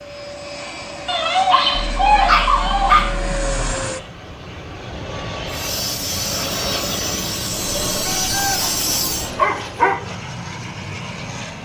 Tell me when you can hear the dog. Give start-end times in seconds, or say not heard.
1.1-3.1, 8.4-10.0.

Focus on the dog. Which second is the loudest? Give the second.
2 s.